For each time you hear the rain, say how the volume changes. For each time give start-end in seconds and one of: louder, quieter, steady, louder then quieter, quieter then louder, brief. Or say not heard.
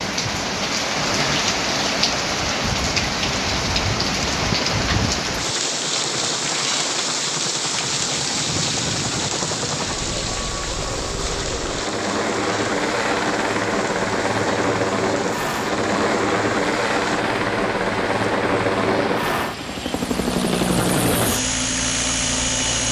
0.0-22.8 quieter.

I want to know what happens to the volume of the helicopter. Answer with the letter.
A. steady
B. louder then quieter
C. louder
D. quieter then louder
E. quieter
C.